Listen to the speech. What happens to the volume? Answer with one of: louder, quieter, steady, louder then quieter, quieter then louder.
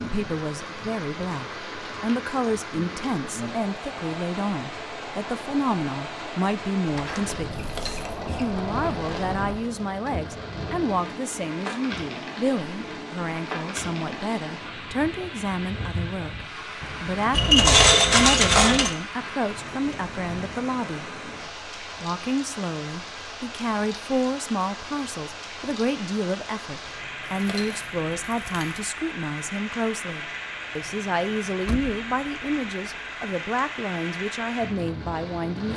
steady.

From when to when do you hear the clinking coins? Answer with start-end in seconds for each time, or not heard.
7.5-8.2, 17.3-18.9, 27.3-28.9.